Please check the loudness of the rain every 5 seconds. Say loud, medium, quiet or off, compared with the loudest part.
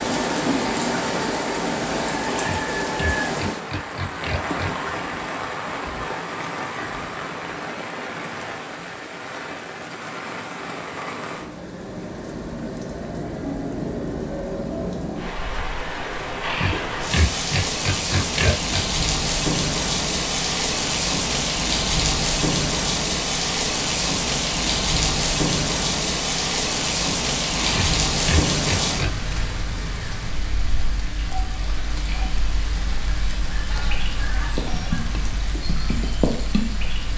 loud, medium, medium, loud, loud, loud, medium, medium.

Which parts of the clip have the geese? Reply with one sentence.
You can hear the geese from 33.5 to 35.1 s.